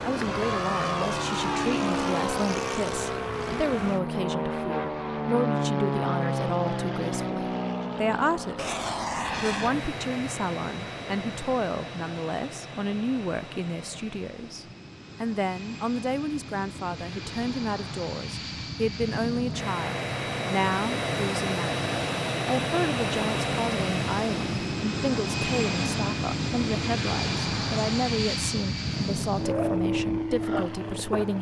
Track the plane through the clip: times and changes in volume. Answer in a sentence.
The plane can be heard from 0.0 to 31.3 s, getting quieter then louder.